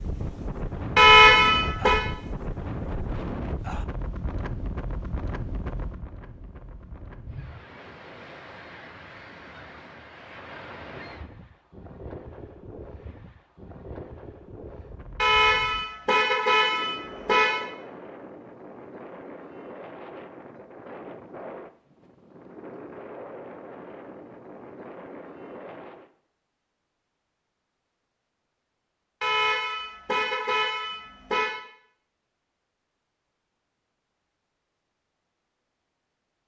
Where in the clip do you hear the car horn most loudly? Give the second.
1 s.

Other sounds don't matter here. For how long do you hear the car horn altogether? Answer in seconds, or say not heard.
6 s.